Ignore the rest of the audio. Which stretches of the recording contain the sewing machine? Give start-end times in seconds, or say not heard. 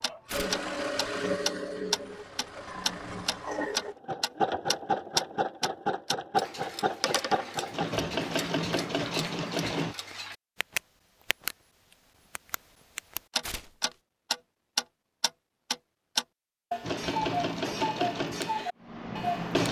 0.1-9.9, 16.8-19.6.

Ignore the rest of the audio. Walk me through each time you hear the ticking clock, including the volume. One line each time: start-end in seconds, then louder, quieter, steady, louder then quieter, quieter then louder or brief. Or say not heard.
0.0-11.6 quieter
12.3-19.6 louder then quieter.